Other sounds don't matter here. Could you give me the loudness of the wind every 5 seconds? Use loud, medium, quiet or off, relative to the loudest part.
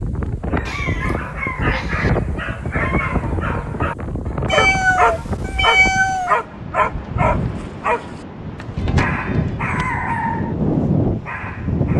medium, medium, loud.